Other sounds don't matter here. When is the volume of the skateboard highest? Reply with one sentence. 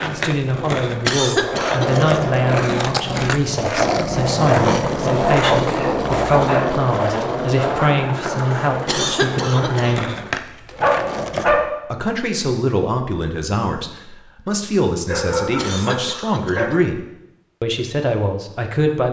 The loudest moment of the skateboard is at 5 seconds.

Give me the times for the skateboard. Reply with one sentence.
You can hear the skateboard from 0.0 to 11.5 s.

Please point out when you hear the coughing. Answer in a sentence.
You can hear the coughing from 1.1 to 2.0 s, from 8.8 to 10.1 s and from 15.6 to 16.8 s.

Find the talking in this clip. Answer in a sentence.
You can hear the talking from 0.0 to 10.1 s, from 11.8 to 17.0 s and from 17.6 to 19.0 s.